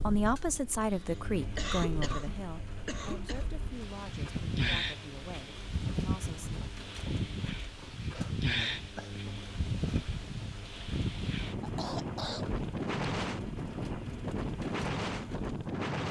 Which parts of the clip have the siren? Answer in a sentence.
The siren can't be heard in this clip.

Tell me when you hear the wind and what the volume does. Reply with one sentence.
You can hear the wind from 0.0 to 16.0 s, getting louder.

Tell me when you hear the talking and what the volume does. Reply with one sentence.
You can hear the talking from 0.0 to 6.6 s, getting quieter.